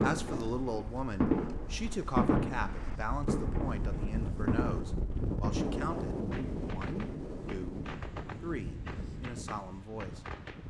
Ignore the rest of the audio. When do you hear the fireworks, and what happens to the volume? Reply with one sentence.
You can hear the fireworks from 0.0 to 10.6 s, getting quieter.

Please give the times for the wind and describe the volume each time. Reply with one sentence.
The wind can be heard from 0.2 to 10.6 s, getting louder then quieter.